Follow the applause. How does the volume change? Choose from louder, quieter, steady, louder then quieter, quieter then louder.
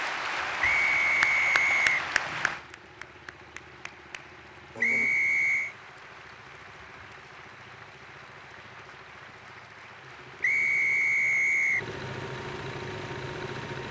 quieter.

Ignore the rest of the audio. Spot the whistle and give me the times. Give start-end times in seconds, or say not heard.
0.6-2.0, 4.8-5.8, 10.4-11.9.